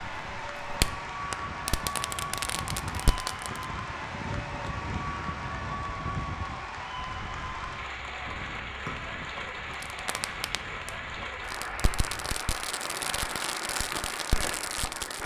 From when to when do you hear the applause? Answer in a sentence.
The applause can be heard from 0.0 to 15.2 s.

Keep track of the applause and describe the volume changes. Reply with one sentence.
The volume of the applause stays about the same.